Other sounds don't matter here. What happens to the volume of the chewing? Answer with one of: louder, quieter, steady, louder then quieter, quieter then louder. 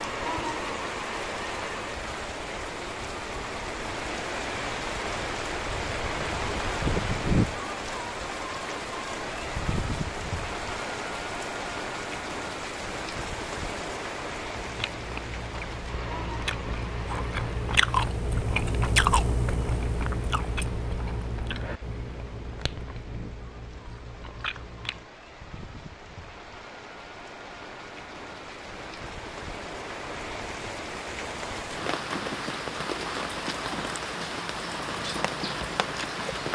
louder then quieter.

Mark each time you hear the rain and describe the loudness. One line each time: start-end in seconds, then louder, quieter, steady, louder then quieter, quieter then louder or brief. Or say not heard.
0.0-36.4 quieter then louder.